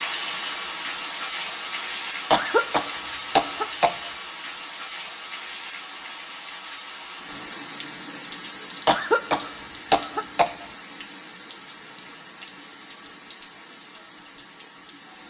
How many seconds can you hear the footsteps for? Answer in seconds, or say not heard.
not heard.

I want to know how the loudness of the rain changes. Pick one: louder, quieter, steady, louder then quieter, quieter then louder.
quieter.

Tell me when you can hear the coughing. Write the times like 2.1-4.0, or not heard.
2.3-4.1, 8.8-10.7.